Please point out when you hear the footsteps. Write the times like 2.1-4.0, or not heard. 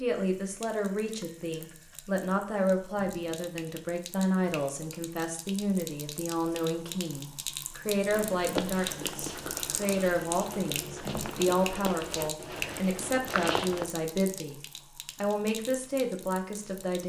8.1-13.8.